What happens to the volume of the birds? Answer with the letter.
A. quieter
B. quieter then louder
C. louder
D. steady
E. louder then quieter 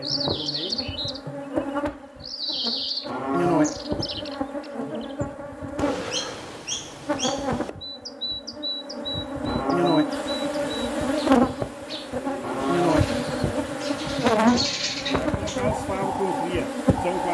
B.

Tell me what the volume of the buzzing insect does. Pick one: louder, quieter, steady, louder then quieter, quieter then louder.
louder.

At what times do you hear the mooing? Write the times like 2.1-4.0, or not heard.
3.0-3.7, 9.4-10.1, 12.4-13.1.